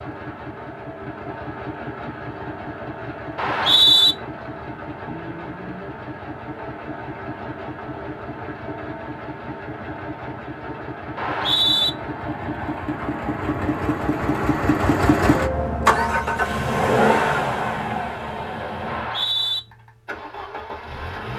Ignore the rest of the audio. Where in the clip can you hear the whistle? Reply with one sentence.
The whistle can be heard from 3.4 to 4.2 s, from 11.2 to 11.9 s and from 18.9 to 19.6 s.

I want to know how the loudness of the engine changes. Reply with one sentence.
The loudness of the engine goes up.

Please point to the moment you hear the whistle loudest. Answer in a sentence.
The volume of the whistle peaks at 4 seconds.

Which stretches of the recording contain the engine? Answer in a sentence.
You can hear the engine from 0.0 to 21.3 s.